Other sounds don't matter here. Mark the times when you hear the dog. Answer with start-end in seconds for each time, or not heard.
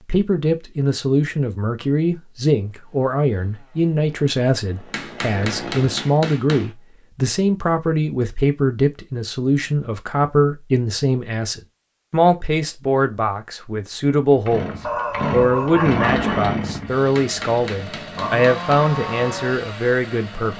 14.8-16.4.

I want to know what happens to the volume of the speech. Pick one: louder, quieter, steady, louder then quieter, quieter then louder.
steady.